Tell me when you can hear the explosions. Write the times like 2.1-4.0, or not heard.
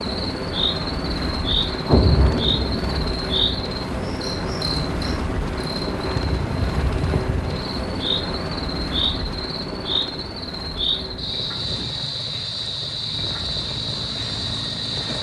1.9-3.1.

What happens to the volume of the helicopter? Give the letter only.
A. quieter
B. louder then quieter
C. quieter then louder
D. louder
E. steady
A.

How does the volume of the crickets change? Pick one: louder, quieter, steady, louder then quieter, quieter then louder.
steady.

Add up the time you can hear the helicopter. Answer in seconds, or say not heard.
15 s.